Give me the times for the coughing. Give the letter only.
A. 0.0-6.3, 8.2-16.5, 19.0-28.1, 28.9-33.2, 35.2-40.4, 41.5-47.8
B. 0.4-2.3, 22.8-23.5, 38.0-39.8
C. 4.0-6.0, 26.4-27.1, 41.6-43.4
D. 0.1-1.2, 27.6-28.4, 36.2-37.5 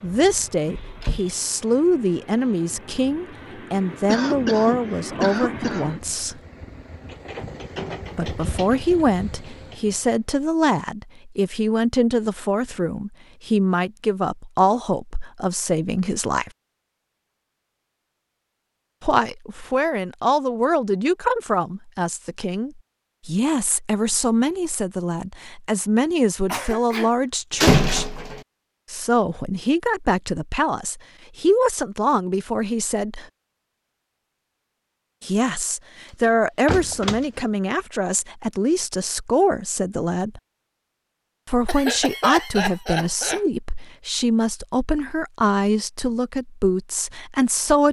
C.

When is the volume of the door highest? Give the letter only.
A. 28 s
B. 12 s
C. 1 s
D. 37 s
A.